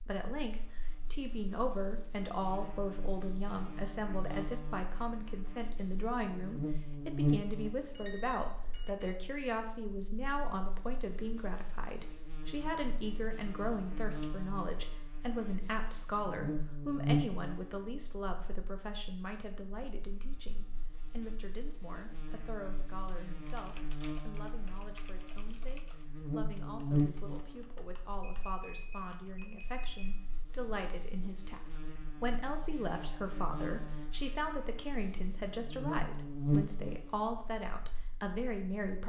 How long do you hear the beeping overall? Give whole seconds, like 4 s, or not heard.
3 s.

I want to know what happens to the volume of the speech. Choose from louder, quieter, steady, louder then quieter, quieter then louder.
quieter then louder.